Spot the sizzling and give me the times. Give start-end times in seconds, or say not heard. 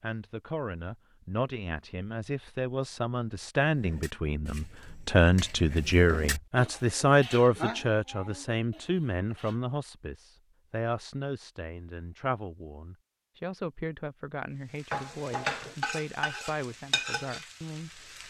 14.8-18.2.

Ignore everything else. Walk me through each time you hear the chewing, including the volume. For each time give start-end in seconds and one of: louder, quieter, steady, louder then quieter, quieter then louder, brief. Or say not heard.
not heard.